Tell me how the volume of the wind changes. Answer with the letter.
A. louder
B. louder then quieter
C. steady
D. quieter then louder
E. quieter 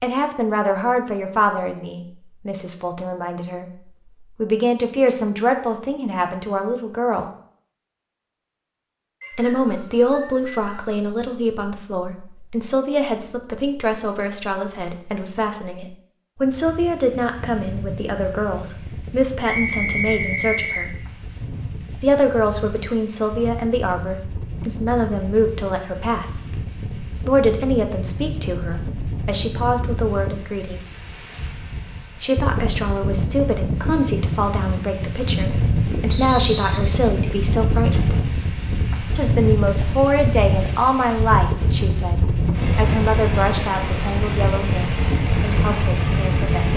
A.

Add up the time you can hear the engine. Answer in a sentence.
The engine can be heard for 4 seconds in total.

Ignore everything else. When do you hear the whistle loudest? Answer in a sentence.
The volume of the whistle peaks at 20 seconds.